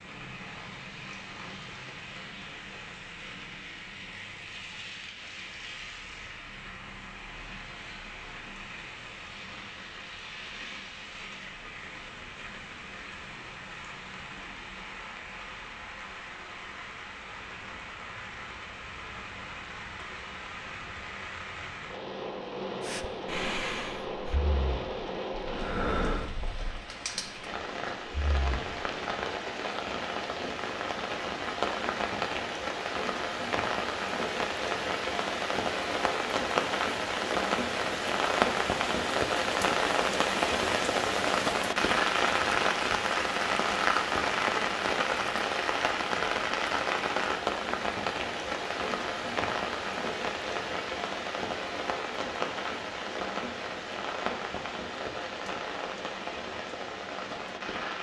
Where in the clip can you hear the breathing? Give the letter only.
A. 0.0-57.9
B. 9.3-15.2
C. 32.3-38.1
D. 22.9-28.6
D.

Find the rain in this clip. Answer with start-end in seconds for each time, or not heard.
0.0-57.9.